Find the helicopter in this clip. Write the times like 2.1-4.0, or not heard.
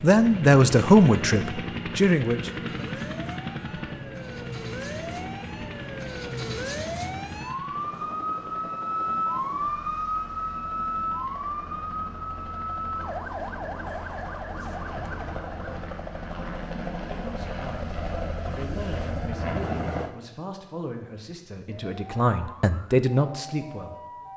0.0-20.1.